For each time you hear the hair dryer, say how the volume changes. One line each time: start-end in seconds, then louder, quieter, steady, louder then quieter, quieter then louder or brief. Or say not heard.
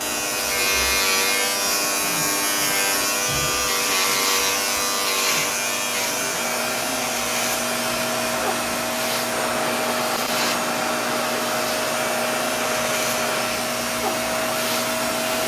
0.0-15.4 louder.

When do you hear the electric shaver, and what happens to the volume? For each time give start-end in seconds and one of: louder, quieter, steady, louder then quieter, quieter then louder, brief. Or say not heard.
0.0-15.4 quieter.